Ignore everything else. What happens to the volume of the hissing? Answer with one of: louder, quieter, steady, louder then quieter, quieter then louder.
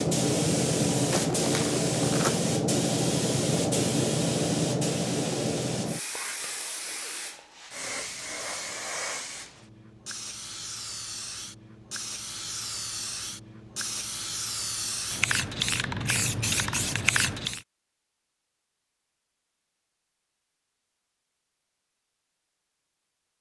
quieter then louder.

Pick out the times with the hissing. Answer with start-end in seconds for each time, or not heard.
0.0-17.6.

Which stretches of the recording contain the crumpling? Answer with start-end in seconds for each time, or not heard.
1.1-2.4.